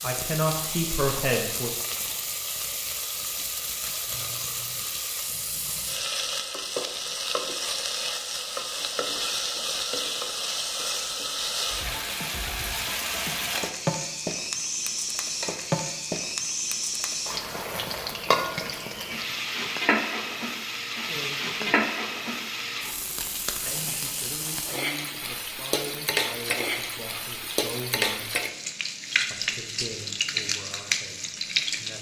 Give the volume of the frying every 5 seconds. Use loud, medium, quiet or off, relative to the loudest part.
medium, loud, loud, loud, loud, loud, loud.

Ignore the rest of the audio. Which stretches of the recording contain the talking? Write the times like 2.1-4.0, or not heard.
0.0-1.7, 20.9-21.9, 23.6-28.3, 29.3-31.9.